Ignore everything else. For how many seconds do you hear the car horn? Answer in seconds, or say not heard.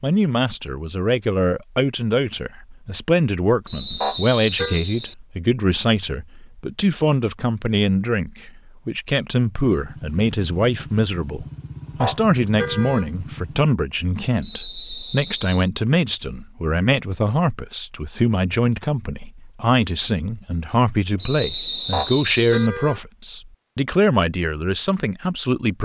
3 s.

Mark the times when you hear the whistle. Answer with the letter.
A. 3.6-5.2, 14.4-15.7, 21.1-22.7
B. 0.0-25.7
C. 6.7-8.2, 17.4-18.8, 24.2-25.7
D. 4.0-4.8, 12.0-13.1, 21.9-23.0
A.